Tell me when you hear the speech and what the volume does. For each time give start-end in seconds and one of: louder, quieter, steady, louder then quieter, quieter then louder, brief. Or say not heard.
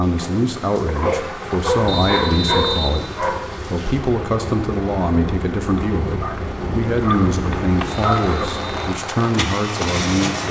0.0-10.4 steady.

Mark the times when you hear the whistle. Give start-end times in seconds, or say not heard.
1.9-3.0, 7.8-8.9.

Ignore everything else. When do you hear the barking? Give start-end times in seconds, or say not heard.
0.8-3.5, 5.8-8.6.